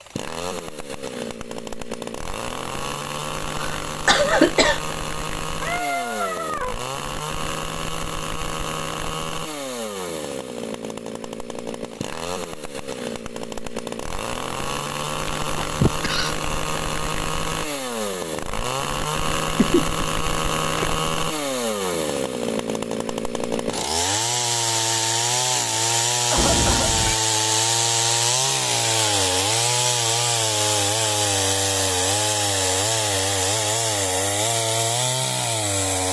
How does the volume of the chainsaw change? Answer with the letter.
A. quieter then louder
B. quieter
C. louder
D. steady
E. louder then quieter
C.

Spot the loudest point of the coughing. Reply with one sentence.
The loudest moment of the coughing is at 4 seconds.